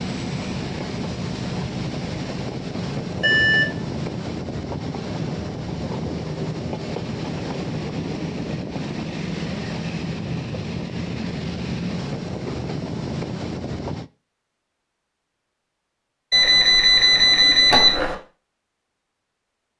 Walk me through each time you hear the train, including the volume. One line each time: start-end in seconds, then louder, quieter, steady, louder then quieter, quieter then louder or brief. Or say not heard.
0.0-14.1 steady.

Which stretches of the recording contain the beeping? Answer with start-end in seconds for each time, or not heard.
3.2-3.8, 16.3-18.1.